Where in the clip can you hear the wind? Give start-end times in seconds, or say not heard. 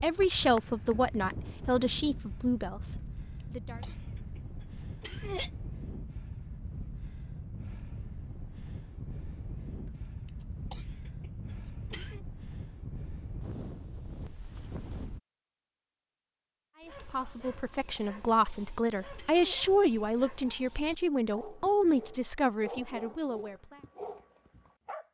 0.0-15.2.